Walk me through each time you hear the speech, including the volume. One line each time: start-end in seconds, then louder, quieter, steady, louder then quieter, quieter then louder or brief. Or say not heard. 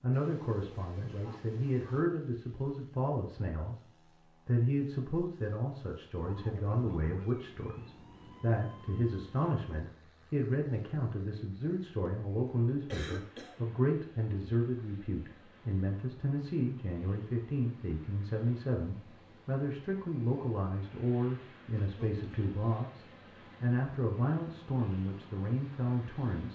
0.0-26.5 steady.